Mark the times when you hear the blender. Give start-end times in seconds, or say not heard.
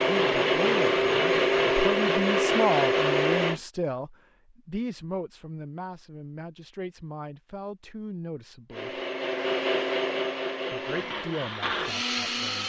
0.0-3.6, 8.7-12.6.